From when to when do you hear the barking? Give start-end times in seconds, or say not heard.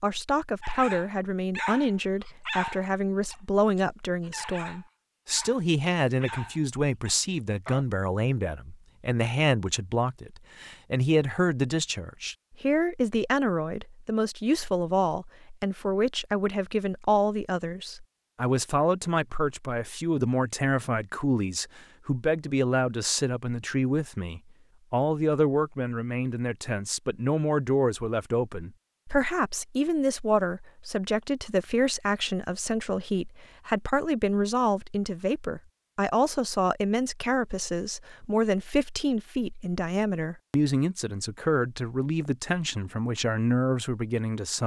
0.6-7.8.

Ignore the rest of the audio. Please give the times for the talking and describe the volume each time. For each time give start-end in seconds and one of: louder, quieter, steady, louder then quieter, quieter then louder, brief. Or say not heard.
0.0-44.6 steady.